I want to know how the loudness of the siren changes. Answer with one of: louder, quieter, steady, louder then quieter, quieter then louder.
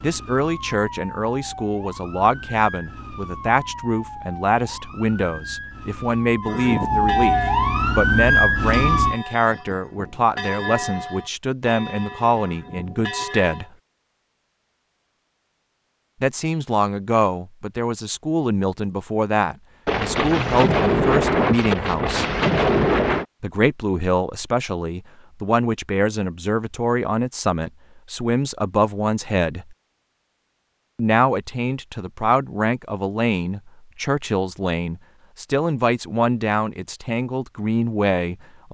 louder.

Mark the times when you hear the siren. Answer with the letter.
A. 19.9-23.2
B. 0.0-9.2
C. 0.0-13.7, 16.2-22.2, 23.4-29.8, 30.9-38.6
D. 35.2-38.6
B.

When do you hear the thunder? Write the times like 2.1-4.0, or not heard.
19.9-23.2.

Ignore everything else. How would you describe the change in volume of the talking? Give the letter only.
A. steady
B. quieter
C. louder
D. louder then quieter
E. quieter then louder
A.